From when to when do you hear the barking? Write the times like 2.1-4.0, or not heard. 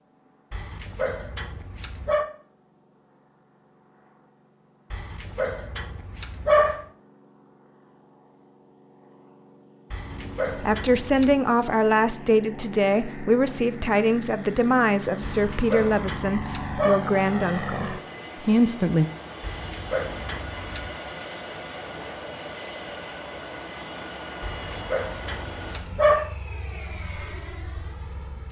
0.5-2.2, 4.9-6.8, 9.9-11.3, 15.2-17.0, 19.4-20.9, 24.4-26.3.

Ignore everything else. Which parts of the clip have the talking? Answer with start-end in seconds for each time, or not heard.
10.6-19.1.